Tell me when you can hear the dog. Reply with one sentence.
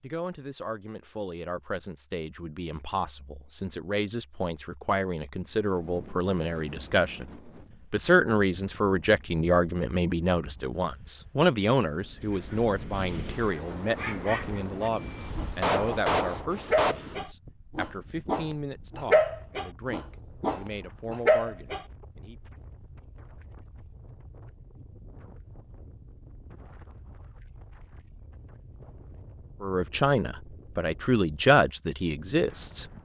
You can hear the dog from 13.5 to 21.8 s.